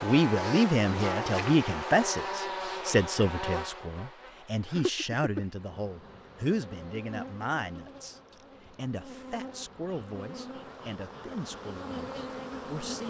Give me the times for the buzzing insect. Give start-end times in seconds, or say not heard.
0.0-13.0.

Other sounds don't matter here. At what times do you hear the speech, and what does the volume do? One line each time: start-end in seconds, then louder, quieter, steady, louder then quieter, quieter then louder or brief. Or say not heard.
0.0-13.0 quieter.